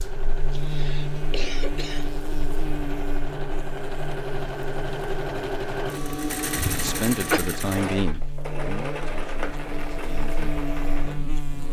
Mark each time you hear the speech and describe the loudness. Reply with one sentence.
You can hear the speech from 6.8 to 11.6 s, getting quieter.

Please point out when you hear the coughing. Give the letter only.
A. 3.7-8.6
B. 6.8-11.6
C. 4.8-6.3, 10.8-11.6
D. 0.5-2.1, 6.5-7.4
D.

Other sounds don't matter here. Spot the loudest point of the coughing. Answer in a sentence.
The volume of the coughing peaks at 7 seconds.